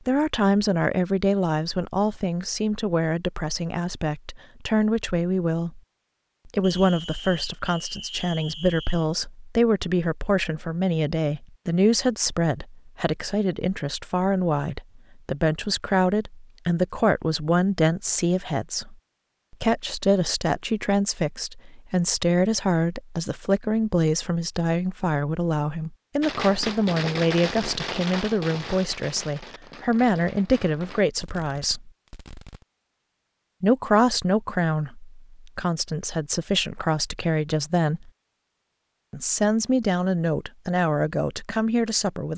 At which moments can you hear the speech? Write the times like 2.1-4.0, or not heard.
0.1-5.8, 6.5-31.9, 33.6-38.1, 39.1-42.3.